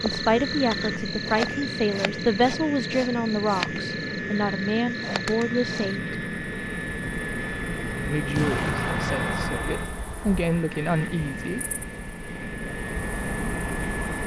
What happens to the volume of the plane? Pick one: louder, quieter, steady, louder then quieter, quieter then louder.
steady.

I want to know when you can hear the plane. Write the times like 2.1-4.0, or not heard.
0.0-14.2.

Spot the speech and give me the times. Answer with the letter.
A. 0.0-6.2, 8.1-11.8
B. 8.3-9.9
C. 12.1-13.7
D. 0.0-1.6
A.